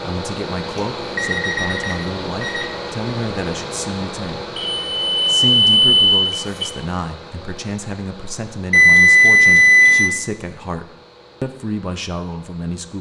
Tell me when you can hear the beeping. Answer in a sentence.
The beeping can be heard from 0.8 to 2.6 s, from 4.5 to 6.7 s and from 8.7 to 10.1 s.